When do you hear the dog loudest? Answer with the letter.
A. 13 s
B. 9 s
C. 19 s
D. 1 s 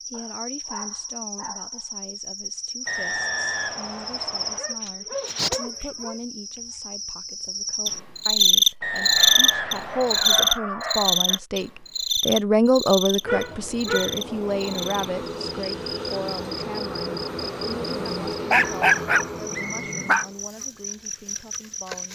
C.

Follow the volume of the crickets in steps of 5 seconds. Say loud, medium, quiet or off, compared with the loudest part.
medium, loud, loud, quiet, quiet.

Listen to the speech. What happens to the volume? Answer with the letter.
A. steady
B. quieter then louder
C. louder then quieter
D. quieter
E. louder
C.